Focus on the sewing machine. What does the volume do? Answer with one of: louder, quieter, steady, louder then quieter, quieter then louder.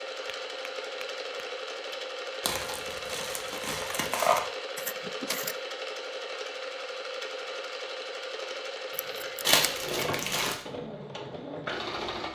steady.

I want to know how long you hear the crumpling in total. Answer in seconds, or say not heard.
3 s.